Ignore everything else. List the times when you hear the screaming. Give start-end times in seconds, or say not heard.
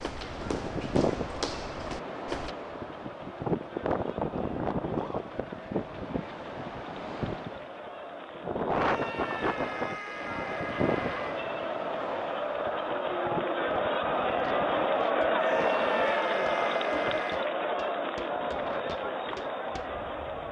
4.8-5.2, 8.8-11.5, 15.3-17.5.